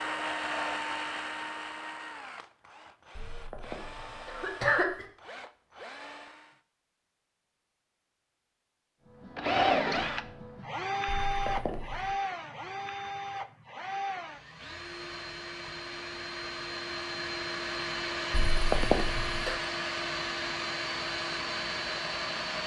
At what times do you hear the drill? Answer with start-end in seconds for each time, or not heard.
0.0-6.6, 9.2-22.6.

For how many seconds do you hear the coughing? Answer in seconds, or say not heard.
4 s.